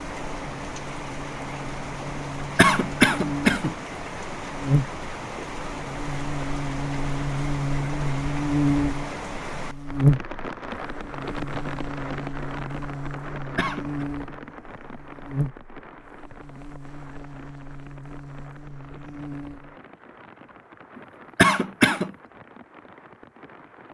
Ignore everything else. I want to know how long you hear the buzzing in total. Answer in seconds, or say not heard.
20 s.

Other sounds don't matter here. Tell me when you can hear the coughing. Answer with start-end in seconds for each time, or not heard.
2.5-3.8, 13.6-14.1, 21.4-22.1.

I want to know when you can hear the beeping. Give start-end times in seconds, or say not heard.
not heard.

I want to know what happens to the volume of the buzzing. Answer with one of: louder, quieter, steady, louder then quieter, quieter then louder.
louder then quieter.